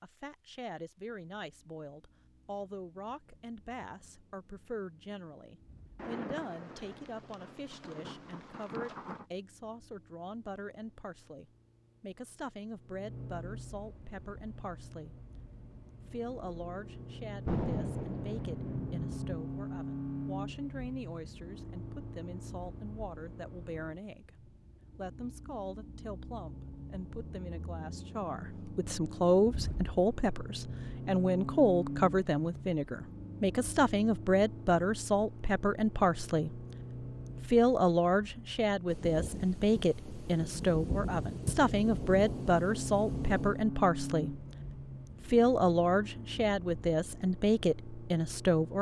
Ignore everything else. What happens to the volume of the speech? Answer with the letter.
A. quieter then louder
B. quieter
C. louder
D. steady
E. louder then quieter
C.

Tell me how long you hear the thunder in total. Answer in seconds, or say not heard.
10 s.